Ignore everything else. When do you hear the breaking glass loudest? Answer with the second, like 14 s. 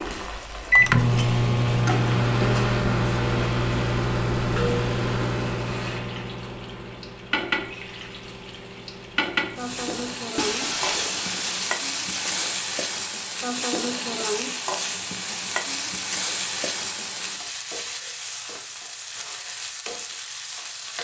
11 s.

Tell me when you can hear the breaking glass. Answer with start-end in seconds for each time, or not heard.
10.3-12.6.